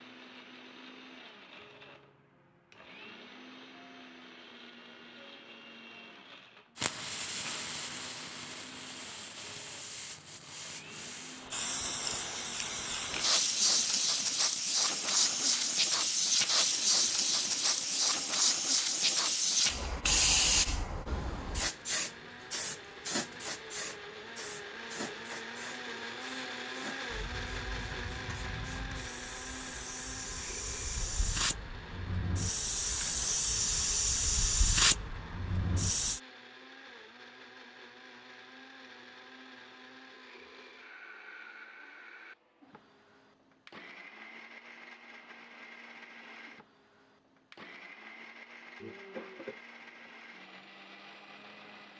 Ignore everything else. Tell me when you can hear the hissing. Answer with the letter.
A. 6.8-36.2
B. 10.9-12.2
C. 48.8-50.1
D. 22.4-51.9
A.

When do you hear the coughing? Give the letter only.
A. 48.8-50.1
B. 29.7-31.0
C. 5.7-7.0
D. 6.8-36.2
A.